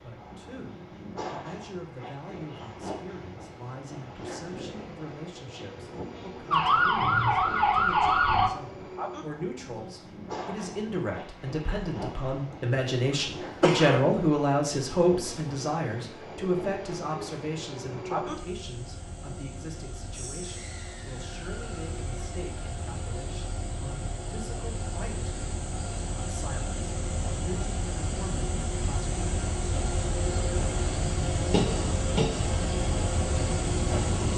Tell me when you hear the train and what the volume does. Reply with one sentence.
You can hear the train from 0.0 to 34.3 s, getting louder.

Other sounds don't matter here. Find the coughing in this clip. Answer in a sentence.
The coughing can be heard from 13.6 to 14.1 s.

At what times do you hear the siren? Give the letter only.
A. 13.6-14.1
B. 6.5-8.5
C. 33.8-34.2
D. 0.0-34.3
B.